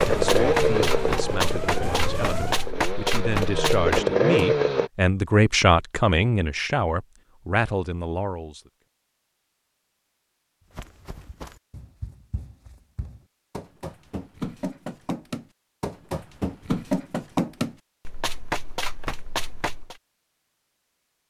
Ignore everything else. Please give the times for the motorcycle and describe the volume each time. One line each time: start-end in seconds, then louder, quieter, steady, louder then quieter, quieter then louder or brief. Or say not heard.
0.0-4.9 quieter then louder.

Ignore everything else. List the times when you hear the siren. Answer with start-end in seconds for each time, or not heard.
0.0-2.7.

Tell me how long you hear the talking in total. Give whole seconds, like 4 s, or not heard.
9 s.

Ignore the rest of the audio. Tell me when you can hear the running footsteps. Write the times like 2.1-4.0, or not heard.
0.0-4.5, 10.7-19.9.